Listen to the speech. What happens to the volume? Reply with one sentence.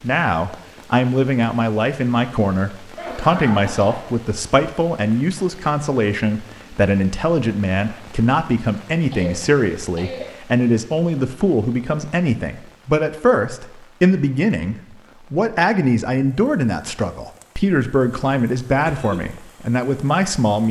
The volume of the speech stays about the same.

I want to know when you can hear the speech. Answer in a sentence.
The speech can be heard from 0.0 to 20.6 s.